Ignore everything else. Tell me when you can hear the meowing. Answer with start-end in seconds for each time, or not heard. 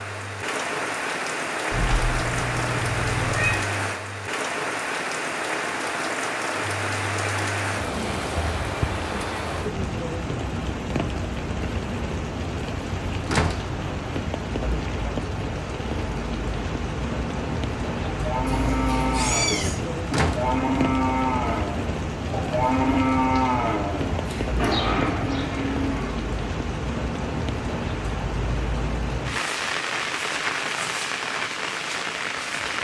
1.7-3.5, 18.4-19.8, 24.1-24.6.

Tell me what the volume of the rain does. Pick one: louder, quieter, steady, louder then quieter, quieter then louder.
steady.